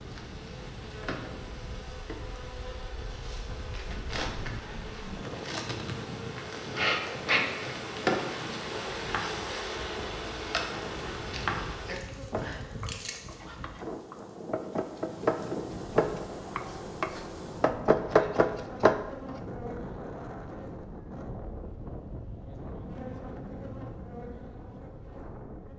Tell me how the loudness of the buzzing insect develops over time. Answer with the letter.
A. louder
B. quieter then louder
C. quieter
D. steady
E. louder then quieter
E.